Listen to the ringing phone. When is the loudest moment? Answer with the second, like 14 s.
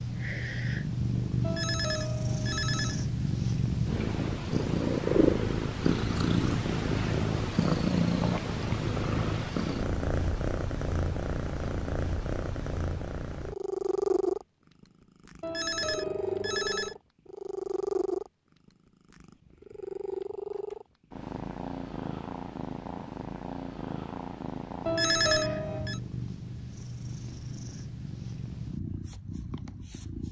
25 s.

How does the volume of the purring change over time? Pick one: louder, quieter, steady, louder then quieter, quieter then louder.
quieter.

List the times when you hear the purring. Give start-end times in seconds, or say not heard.
0.0-30.2.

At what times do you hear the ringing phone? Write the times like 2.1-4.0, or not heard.
1.4-3.0, 15.4-16.9, 24.9-26.0.